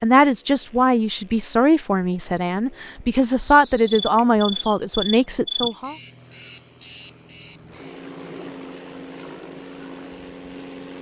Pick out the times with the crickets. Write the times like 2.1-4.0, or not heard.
3.4-10.9.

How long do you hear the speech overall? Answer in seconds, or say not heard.
6 s.